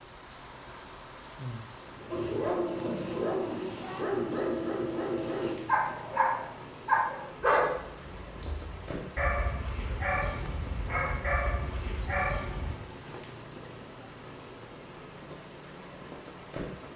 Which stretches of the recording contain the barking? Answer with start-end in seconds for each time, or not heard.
2.1-12.8.